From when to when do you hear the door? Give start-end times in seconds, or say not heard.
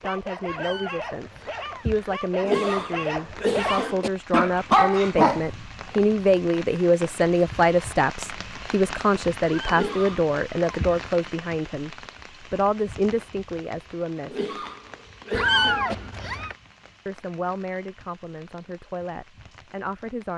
not heard.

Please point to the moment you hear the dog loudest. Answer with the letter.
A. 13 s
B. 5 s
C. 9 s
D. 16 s
B.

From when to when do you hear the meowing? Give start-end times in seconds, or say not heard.
0.5-2.1, 9.4-11.1, 15.3-16.6.